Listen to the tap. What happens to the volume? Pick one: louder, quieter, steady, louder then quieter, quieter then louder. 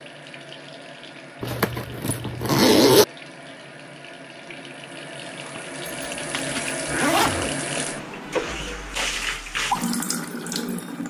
louder.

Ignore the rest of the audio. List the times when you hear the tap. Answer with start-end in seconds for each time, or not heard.
0.0-11.0.